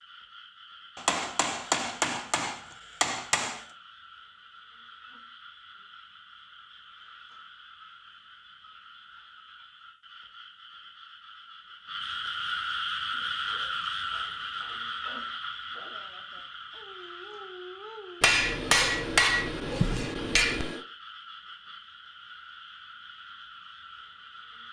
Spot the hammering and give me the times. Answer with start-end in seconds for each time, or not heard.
0.9-3.6, 18.2-20.8.